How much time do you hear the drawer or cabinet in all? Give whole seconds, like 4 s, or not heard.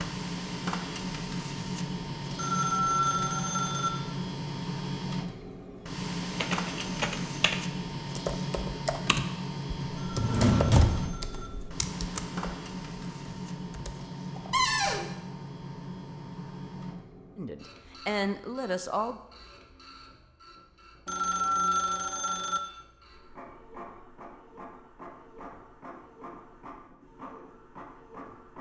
2 s.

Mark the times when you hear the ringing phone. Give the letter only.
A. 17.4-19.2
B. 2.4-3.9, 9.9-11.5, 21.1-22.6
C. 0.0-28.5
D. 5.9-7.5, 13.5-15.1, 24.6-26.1
B.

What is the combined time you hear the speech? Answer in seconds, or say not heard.
2 s.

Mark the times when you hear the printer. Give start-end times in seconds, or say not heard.
0.0-28.5.